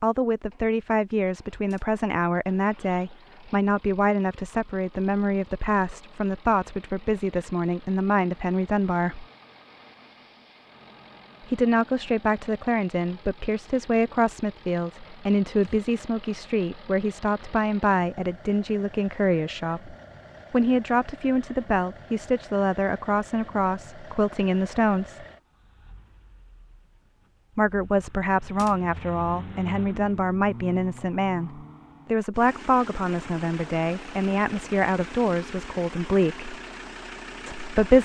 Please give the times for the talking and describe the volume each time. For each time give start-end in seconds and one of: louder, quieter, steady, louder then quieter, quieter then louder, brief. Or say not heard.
0.0-9.2 steady
11.4-25.2 steady
27.6-36.5 steady
37.5-37.9 brief.